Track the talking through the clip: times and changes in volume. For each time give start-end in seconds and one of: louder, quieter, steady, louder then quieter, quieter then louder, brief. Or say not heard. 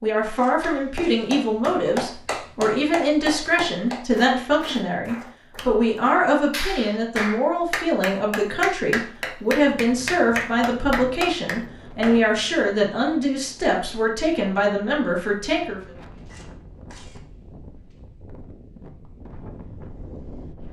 0.0-15.8 steady.